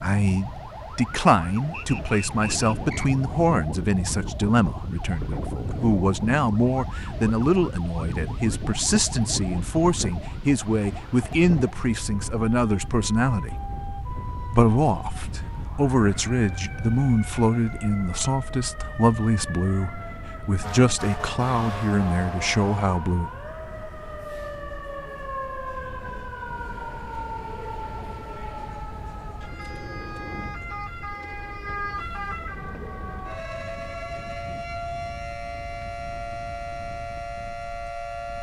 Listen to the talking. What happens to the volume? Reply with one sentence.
The volume of the talking stays about the same.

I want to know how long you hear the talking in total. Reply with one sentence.
You can hear the talking for 22 seconds altogether.